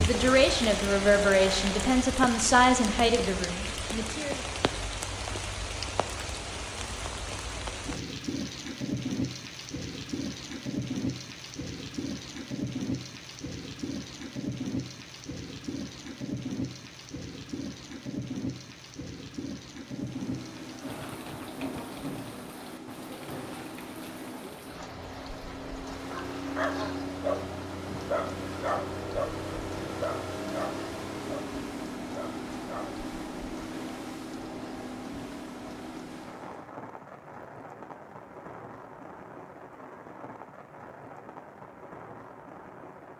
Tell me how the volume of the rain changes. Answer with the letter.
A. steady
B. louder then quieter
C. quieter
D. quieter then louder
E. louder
C.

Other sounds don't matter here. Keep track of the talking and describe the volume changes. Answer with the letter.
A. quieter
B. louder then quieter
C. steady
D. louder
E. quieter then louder
A.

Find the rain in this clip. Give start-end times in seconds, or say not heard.
0.0-43.1.